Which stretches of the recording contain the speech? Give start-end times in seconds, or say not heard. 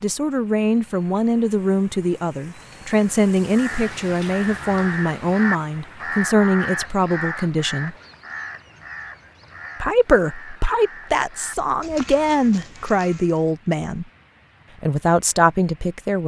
0.0-8.0, 9.8-14.1, 14.8-16.2.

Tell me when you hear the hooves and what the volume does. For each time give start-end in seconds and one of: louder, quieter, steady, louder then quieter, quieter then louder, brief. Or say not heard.
not heard.